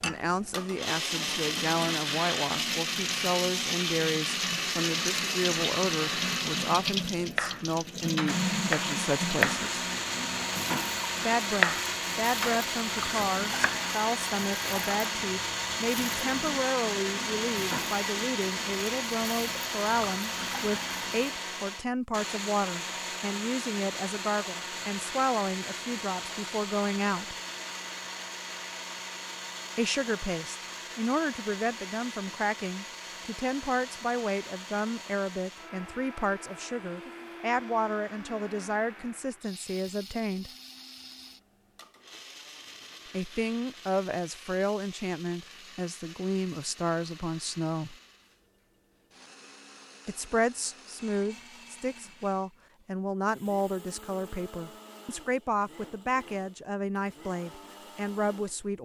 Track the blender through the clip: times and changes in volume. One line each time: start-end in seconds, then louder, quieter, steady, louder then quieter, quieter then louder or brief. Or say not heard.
0.2-58.7 quieter.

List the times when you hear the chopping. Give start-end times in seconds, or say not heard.
7.3-10.6, 11.4-13.8.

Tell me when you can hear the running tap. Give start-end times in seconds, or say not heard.
0.0-21.3.